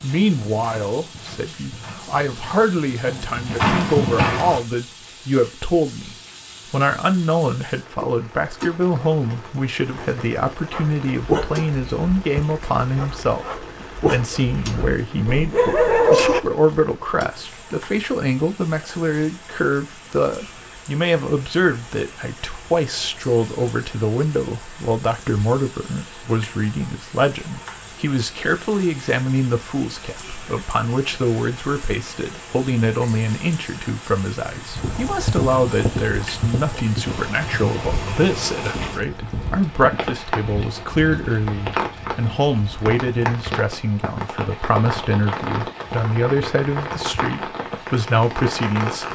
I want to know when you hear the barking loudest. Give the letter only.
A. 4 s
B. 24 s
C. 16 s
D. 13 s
C.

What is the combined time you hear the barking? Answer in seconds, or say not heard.
6 s.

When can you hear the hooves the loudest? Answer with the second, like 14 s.
4 s.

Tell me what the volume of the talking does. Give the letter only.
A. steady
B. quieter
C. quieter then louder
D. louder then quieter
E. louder
A.